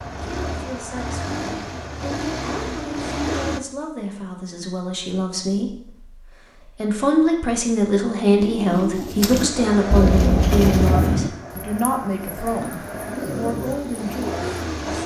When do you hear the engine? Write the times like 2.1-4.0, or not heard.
0.0-3.6, 9.2-15.0.